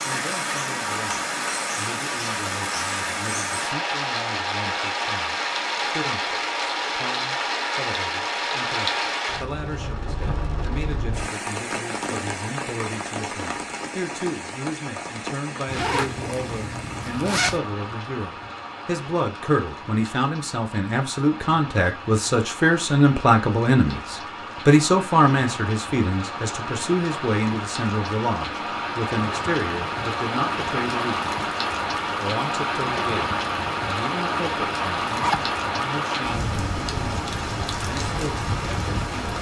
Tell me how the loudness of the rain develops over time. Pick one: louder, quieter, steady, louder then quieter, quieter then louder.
quieter then louder.